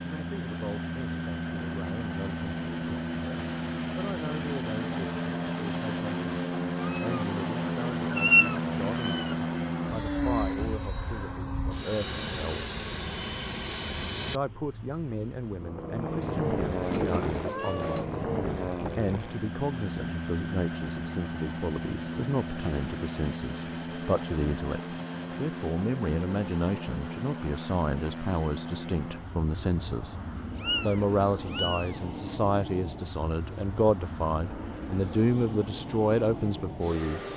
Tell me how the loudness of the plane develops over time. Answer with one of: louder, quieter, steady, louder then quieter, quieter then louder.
quieter.